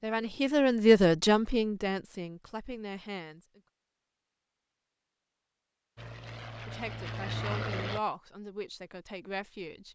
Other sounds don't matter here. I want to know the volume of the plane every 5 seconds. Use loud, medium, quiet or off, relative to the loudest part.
off, loud.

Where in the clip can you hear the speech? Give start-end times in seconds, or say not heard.
0.0-3.6, 6.7-9.9.